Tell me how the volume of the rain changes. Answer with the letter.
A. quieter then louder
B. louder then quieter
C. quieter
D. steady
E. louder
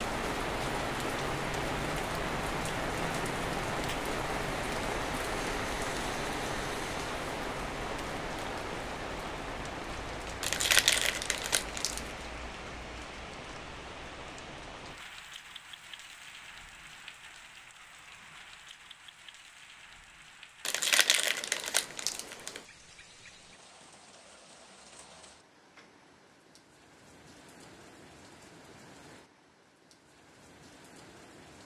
C.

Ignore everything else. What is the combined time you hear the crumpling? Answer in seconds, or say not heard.
4 s.